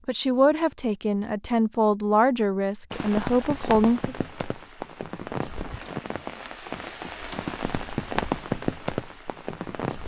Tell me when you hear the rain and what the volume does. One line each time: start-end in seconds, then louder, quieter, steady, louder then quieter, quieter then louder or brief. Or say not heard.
2.9-10.0 louder.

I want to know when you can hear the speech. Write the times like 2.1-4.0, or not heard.
0.1-4.2.